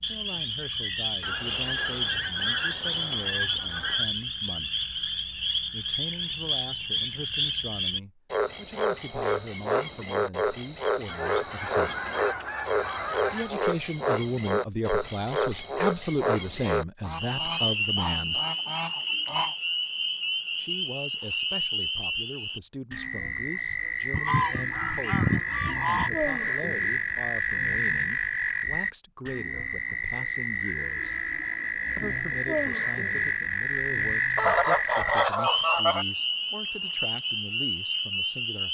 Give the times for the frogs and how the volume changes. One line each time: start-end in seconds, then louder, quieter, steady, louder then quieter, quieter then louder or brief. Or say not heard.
0.0-38.6 steady.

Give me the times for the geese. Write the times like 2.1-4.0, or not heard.
1.2-4.1, 11.1-13.6, 17.0-19.6, 24.1-26.1, 34.4-36.0.